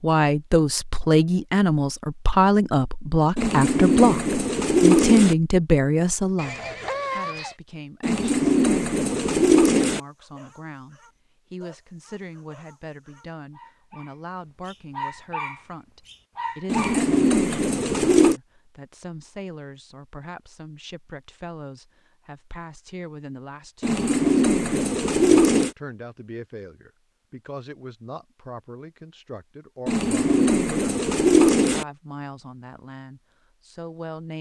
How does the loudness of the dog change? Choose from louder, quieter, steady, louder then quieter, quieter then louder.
louder.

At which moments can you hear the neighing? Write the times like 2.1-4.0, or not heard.
6.3-7.5.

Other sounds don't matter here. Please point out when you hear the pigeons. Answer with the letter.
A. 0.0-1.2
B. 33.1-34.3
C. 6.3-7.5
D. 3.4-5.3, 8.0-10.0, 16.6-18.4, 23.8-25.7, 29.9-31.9
D.